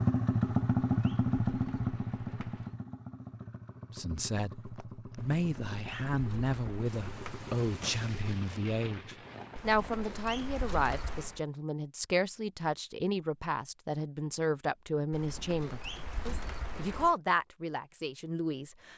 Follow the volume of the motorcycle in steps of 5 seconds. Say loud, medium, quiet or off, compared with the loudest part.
loud, quiet, off, off.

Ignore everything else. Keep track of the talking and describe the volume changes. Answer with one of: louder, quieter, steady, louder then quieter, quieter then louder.
steady.